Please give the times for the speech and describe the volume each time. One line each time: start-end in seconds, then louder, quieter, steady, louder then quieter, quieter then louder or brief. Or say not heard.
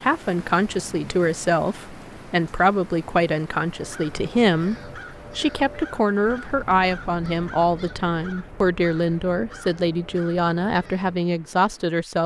0.0-12.2 steady.